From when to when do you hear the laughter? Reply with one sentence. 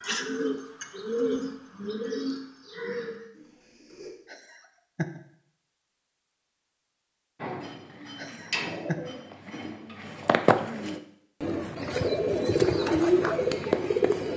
The laughter can be heard from 4.2 to 5.2 s and from 8.2 to 9.0 s.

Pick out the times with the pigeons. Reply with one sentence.
You can hear the pigeons from 0.0 to 4.1 s and from 7.4 to 14.3 s.